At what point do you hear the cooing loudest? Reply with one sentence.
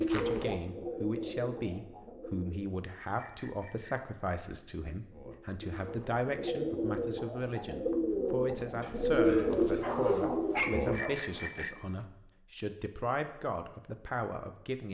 The loudest moment of the cooing is at 9 seconds.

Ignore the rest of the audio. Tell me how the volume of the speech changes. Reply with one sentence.
The volume of the speech stays about the same.